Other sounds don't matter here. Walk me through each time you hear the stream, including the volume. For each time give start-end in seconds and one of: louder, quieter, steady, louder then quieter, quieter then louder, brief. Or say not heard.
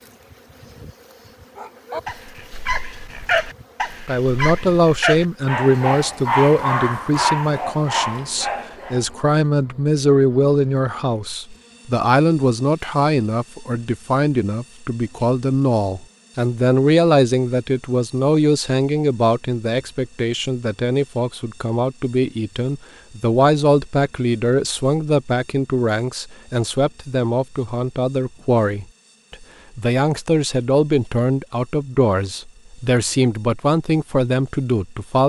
not heard.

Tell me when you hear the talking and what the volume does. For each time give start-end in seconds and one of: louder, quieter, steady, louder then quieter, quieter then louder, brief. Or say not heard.
4.0-35.2 steady.